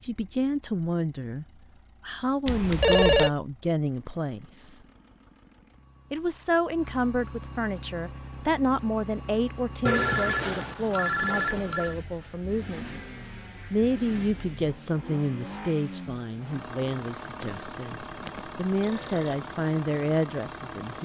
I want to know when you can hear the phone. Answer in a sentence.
You can hear the phone from 2.5 to 3.3 s, from 9.8 to 11.9 s and from 17.4 to 19.4 s.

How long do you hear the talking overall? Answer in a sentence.
The talking can be heard for 18 seconds in total.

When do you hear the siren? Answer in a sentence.
The siren can't be heard in this clip.